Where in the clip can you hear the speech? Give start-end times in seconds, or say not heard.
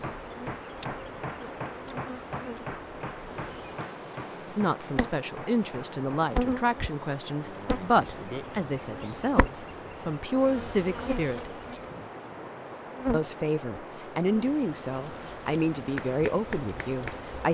4.5-11.5, 13.1-17.5.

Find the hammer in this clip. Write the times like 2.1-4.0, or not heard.
0.0-6.3, 15.8-17.3.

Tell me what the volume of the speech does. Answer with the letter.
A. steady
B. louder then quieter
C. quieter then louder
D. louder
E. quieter
A.